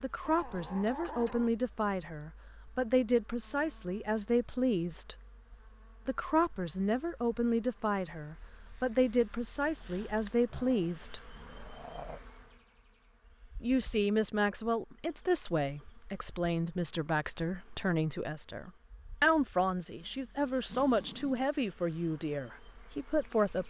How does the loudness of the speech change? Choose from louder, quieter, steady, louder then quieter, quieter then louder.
steady.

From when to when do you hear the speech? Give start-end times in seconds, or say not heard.
0.0-5.2, 6.0-11.2, 13.6-23.6.